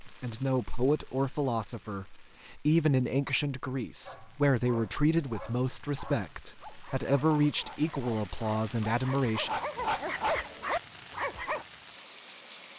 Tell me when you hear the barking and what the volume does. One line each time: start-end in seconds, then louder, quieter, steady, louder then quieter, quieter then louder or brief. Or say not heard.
4.0-11.7 louder.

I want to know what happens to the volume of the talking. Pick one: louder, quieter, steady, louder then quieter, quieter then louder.
steady.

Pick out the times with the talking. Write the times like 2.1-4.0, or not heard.
0.0-9.5.